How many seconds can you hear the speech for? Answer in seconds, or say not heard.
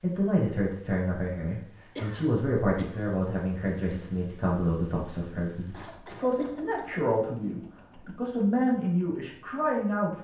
10 s.